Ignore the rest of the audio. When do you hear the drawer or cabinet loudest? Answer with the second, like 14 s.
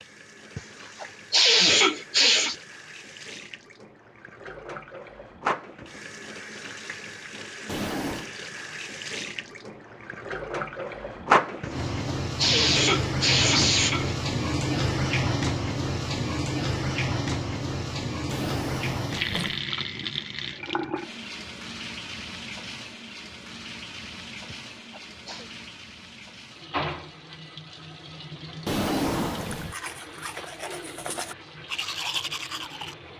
29 s.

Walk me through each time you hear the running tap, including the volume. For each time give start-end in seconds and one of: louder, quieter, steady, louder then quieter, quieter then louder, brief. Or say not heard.
0.0-33.1 louder then quieter.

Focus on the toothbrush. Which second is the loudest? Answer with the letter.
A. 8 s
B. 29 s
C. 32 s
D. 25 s
C.